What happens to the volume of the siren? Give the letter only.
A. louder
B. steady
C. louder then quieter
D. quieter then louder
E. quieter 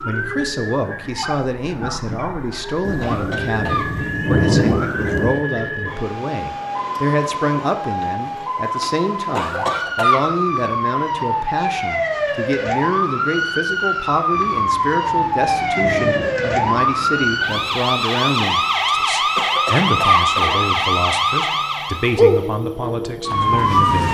A.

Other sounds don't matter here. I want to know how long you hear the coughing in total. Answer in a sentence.
The coughing can be heard for 3 seconds in total.